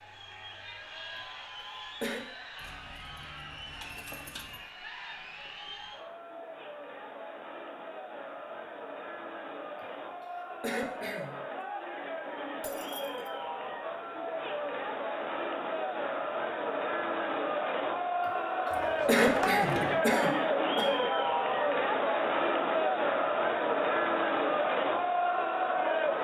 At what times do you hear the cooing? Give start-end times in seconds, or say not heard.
not heard.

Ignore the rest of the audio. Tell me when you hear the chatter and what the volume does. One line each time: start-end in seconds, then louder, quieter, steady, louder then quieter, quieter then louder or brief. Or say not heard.
0.0-26.1 louder.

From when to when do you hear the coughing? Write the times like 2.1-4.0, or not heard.
1.1-2.2, 10.6-11.4, 19.1-20.9.